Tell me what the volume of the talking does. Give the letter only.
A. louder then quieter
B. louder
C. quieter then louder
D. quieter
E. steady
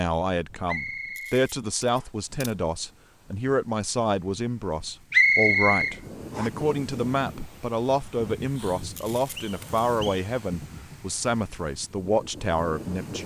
E.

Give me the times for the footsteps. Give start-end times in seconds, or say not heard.
not heard.